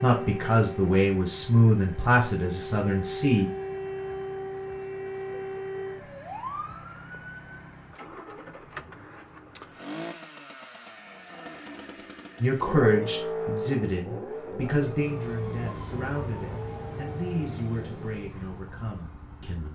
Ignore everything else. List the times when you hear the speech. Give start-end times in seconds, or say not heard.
0.0-3.5, 12.4-19.6.